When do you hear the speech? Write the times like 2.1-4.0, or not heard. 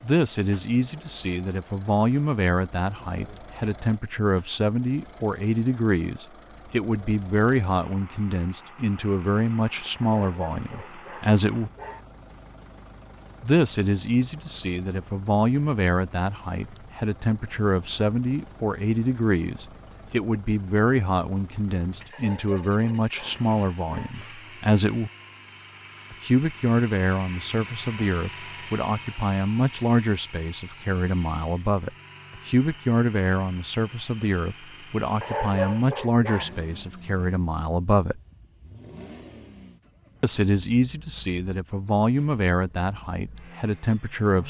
0.0-11.7, 13.4-25.1, 26.1-38.2, 40.2-44.4.